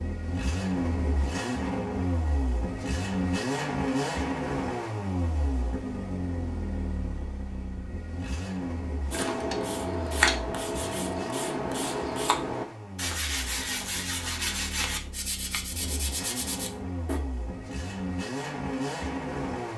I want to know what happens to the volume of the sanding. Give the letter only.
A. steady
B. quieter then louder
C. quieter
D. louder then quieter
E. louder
C.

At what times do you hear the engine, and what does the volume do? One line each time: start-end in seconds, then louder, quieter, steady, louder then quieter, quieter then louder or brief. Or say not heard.
0.0-19.7 quieter then louder.